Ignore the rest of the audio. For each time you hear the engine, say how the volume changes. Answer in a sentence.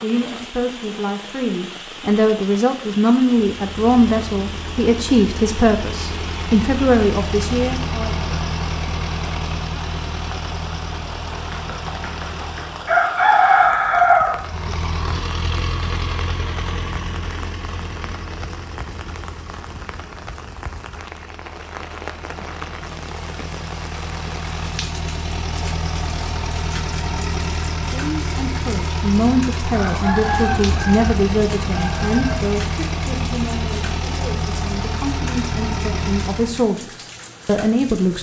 You can hear the engine from 3.5 to 13.1 s, getting louder then quieter; and from 14.3 to 36.7 s, getting quieter then louder.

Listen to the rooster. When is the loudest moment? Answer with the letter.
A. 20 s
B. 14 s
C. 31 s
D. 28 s
B.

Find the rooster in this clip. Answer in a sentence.
You can hear the rooster from 11.3 to 14.8 s and from 29.7 to 32.5 s.